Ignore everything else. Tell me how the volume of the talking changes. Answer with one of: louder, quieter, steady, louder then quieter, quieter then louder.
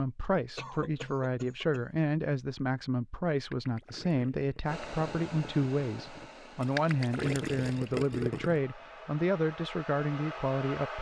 steady.